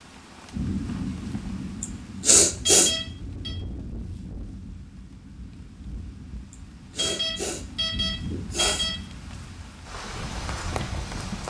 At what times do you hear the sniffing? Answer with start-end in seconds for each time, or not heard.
1.8-3.0, 6.5-8.9.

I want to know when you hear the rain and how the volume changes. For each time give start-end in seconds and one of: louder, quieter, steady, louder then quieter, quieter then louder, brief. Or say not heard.
0.0-11.4 quieter then louder.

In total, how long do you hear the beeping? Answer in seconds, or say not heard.
3 s.